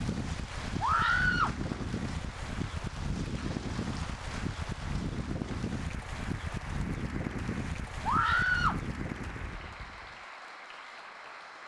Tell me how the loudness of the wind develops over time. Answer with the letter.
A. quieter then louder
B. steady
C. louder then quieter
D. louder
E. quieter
B.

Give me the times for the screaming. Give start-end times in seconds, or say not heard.
0.8-1.6, 8.1-8.8.